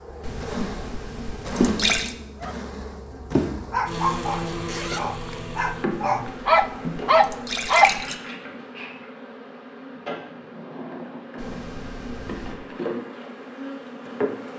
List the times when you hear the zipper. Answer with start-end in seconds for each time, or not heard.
4.7-5.5.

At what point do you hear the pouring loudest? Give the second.
2 s.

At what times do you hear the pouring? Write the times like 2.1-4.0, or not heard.
0.2-2.1, 5.9-8.2, 11.3-12.6.